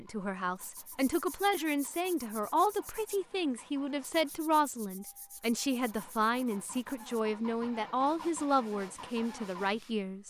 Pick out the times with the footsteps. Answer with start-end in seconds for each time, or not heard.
not heard.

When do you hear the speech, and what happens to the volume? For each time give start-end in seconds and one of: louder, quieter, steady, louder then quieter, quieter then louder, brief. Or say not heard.
0.0-10.2 steady.